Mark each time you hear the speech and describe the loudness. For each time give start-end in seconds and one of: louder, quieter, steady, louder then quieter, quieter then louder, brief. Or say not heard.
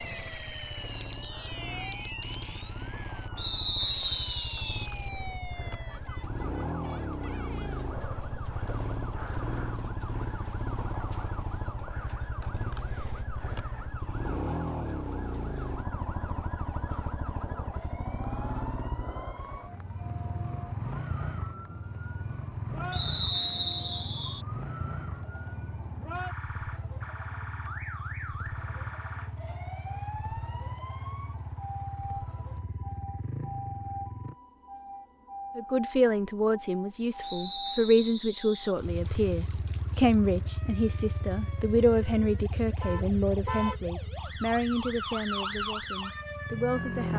35.5-47.1 quieter.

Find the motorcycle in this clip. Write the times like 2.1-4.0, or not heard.
0.0-34.4, 38.9-47.1.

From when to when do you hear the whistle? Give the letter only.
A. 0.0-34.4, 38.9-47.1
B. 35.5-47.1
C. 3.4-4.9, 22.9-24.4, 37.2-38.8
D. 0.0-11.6
C.